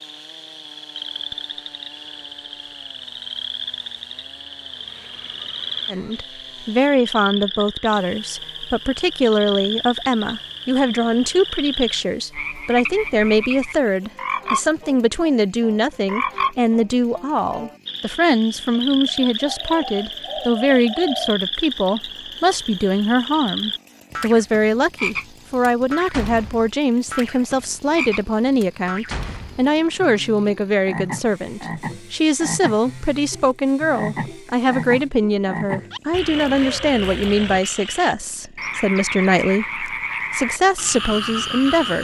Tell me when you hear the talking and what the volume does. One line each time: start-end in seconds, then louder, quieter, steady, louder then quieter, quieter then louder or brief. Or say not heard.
5.9-41.9 steady.